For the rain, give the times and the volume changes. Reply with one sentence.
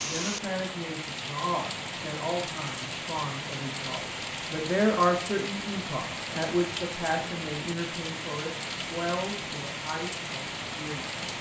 The rain can be heard from 0.0 to 11.3 s, at a steady volume.